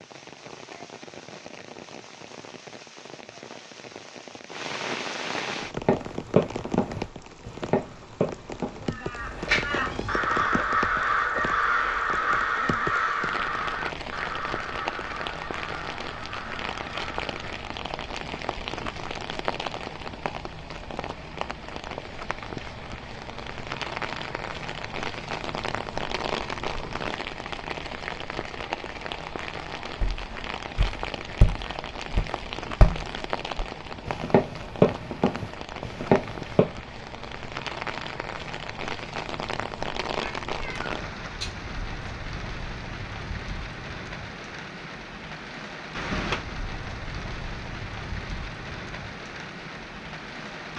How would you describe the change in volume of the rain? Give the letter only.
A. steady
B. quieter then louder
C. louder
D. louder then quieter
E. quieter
A.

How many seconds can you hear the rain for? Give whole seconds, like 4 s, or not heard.
51 s.